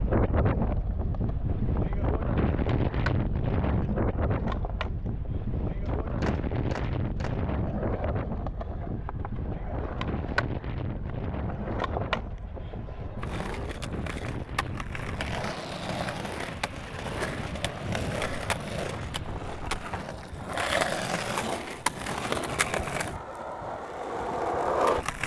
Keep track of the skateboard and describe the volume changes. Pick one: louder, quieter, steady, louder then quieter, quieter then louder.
louder.